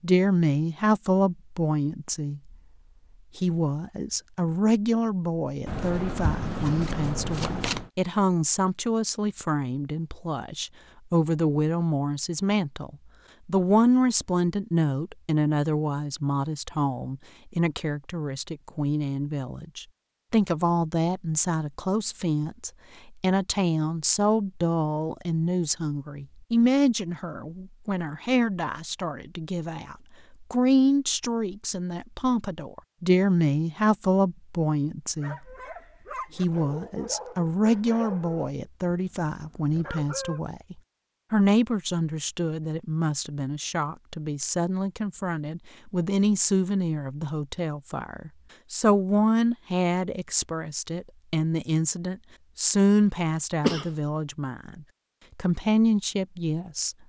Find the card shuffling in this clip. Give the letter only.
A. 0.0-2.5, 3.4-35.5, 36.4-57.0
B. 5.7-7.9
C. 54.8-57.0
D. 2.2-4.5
B.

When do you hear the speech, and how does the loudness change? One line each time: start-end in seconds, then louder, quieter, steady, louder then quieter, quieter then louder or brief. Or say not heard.
0.0-2.5 brief
3.4-35.5 steady
36.4-57.0 steady.